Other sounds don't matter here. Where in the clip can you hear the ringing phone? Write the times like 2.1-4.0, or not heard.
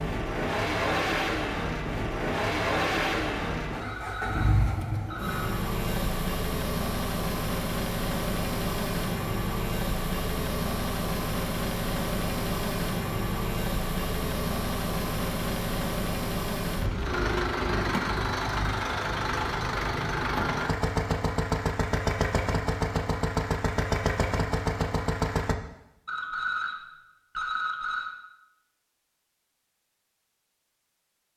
3.8-5.6, 26.1-28.1.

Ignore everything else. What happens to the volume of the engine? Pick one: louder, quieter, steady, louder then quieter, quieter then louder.
steady.